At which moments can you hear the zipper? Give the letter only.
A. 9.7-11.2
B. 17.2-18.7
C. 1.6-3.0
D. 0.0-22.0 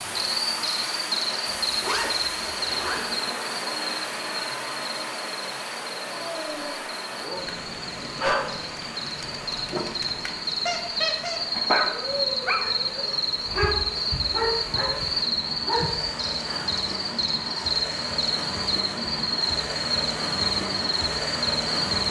C.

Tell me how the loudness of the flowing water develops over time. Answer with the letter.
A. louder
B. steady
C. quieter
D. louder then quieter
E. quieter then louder
E.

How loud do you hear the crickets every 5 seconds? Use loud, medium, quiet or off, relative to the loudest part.
loud, medium, loud, loud, loud.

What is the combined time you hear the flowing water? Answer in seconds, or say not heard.
22 s.